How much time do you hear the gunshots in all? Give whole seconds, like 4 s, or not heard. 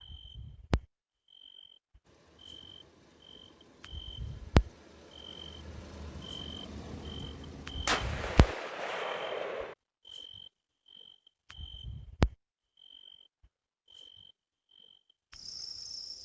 2 s.